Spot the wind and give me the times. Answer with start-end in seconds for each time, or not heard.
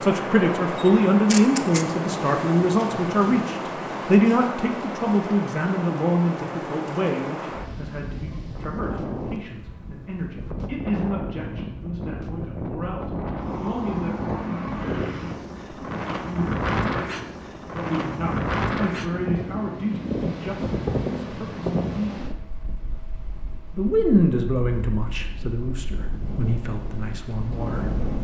0.0-28.1.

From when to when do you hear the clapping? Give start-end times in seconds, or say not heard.
not heard.